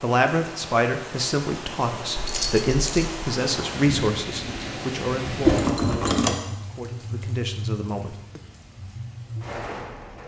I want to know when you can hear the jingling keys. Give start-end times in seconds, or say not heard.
2.1-3.1, 5.5-6.3.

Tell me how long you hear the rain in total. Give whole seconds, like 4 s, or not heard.
10 s.